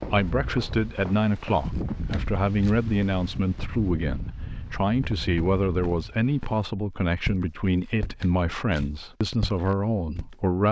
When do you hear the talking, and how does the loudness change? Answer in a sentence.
The talking can be heard from 0.0 to 10.6 s, at a steady volume.